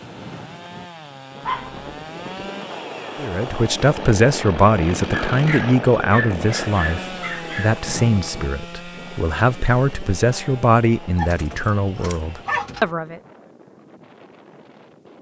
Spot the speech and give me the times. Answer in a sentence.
You can hear the speech from 3.1 to 13.2 s.